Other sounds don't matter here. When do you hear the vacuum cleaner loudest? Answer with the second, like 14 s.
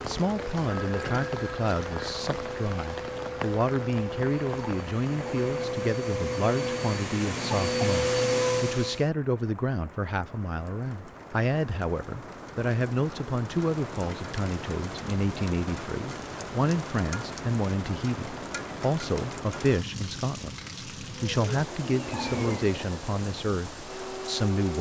8 s.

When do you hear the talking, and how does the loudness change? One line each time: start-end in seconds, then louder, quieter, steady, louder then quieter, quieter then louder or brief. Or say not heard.
0.0-24.7 steady.